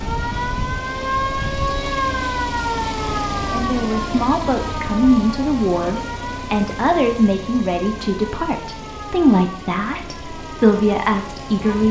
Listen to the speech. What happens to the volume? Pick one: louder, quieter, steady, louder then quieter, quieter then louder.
steady.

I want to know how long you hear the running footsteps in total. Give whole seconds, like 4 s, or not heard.
not heard.